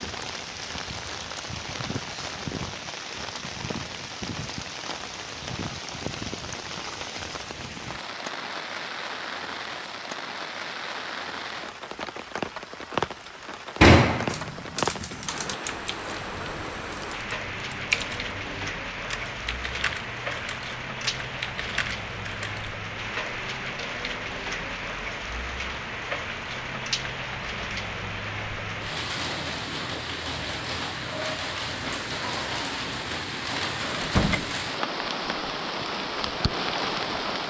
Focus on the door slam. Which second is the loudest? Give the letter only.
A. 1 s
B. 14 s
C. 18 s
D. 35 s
B.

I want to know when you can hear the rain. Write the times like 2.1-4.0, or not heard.
0.0-37.4.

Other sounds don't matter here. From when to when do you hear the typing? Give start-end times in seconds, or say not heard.
14.2-22.8.